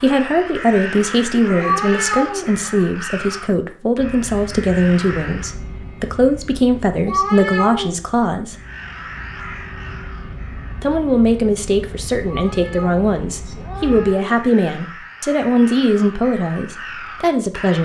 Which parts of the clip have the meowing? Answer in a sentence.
You can hear the meowing from 1.4 to 2.5 s, from 7.0 to 8.0 s and from 12.2 to 14.2 s.